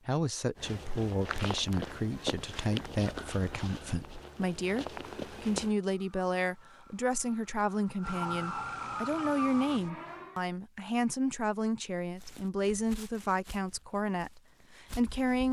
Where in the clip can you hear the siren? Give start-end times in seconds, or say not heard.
5.8-10.4.